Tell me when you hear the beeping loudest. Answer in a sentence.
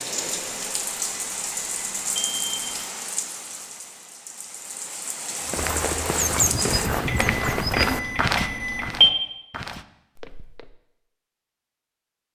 The volume of the beeping peaks at 9 seconds.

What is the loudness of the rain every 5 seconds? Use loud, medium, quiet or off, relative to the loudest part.
loud, loud, off.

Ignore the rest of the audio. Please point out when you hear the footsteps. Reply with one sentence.
The footsteps can be heard from 5.5 to 10.8 s.